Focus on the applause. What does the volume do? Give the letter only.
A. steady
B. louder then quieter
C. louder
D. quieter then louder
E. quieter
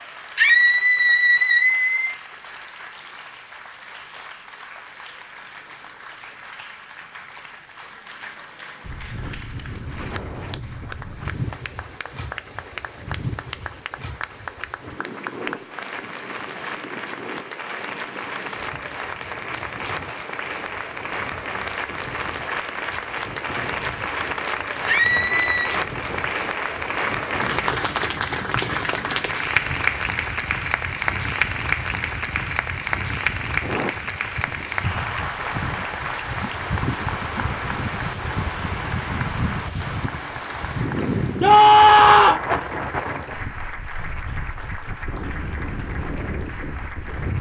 B.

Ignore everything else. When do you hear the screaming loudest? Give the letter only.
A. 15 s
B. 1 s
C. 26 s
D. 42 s
D.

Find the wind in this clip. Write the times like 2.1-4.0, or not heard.
8.8-47.3.